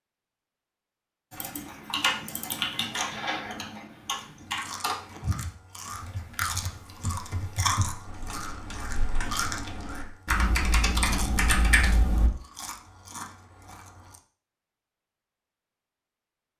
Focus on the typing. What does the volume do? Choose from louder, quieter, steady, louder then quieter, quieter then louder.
quieter then louder.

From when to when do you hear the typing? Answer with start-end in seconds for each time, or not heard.
1.3-12.3.